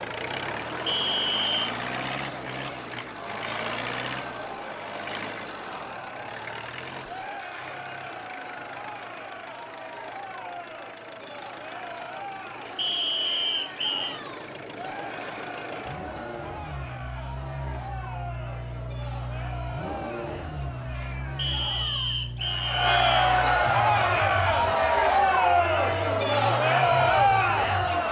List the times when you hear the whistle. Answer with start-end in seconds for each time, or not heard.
0.8-1.8, 12.8-14.2, 21.4-23.4.